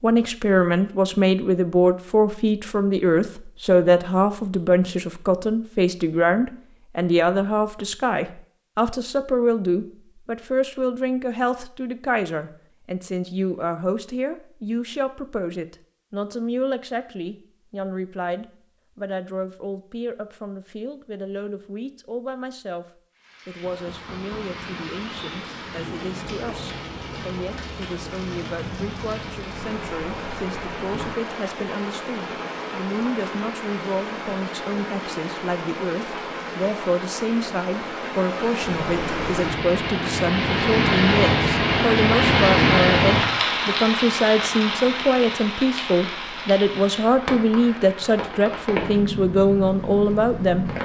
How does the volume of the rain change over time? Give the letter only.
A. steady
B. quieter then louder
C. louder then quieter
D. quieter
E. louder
C.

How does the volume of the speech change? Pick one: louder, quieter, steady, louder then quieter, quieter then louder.
quieter then louder.